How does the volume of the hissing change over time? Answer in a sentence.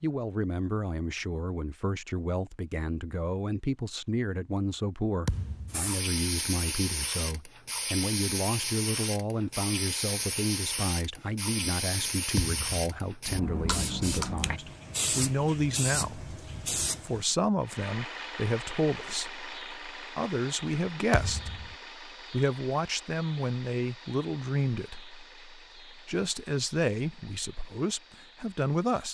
The volume of the hissing stays about the same.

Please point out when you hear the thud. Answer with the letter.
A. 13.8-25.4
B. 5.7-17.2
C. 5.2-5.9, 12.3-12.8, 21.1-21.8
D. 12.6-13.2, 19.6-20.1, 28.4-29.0
C.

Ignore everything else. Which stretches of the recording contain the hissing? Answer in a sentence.
The hissing can be heard from 5.7 to 17.2 s.